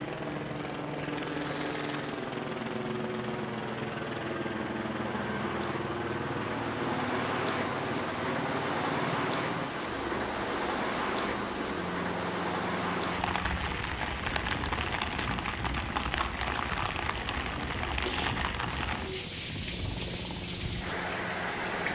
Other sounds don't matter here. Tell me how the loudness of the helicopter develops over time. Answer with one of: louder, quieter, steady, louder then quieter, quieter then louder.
quieter.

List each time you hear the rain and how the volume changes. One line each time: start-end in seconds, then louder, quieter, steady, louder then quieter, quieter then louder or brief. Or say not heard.
0.0-21.9 louder.